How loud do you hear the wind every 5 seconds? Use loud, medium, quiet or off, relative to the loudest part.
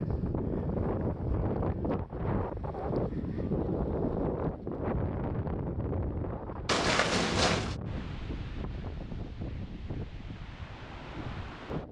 loud, medium, medium.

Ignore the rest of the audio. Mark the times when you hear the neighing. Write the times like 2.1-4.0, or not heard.
6.7-7.8.